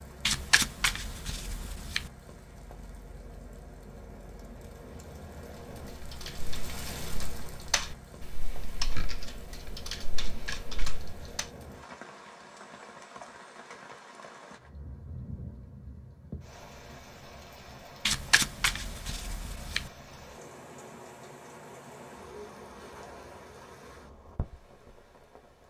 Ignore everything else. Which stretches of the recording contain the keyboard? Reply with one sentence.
The keyboard can be heard from 6.0 to 11.4 s.